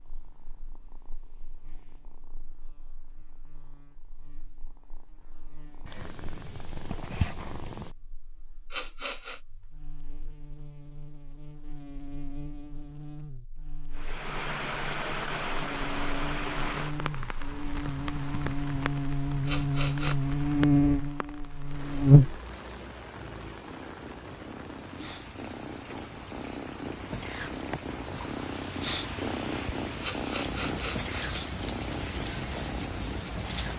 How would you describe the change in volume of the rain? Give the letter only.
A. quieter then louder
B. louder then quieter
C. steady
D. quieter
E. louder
A.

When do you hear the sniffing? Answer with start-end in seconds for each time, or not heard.
8.7-9.4, 19.4-20.1, 30.0-31.1.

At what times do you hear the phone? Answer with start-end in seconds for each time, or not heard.
not heard.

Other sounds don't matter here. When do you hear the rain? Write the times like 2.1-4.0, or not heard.
13.9-33.7.